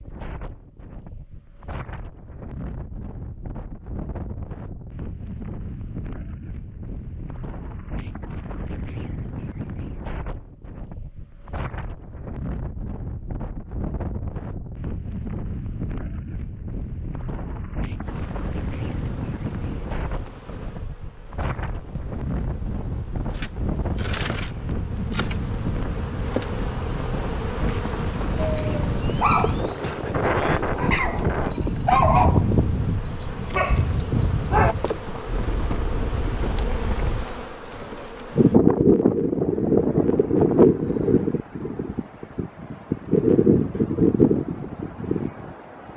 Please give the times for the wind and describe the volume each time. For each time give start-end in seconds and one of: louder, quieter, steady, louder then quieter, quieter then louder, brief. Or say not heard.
0.0-45.9 louder.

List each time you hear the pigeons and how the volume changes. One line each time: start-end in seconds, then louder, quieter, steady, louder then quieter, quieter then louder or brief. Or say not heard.
not heard.